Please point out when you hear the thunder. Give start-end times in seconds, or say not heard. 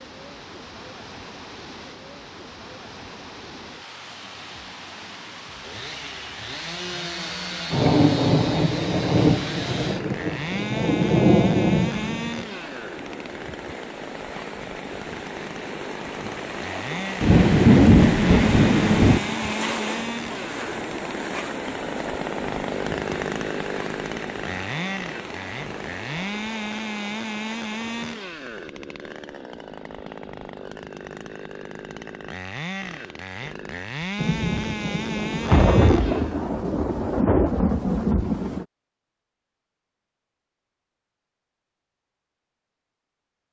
7.7-12.4, 17.2-19.2, 34.2-38.6.